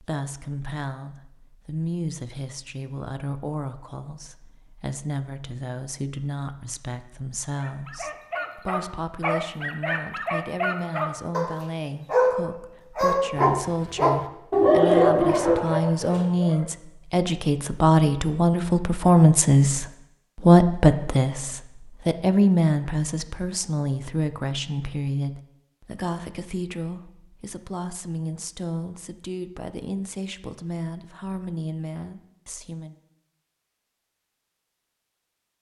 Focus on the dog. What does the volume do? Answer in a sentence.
The loudness of the dog goes up.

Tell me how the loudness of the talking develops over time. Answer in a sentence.
The loudness of the talking goes up, then down.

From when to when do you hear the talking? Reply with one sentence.
The talking can be heard from 0.0 to 33.0 s.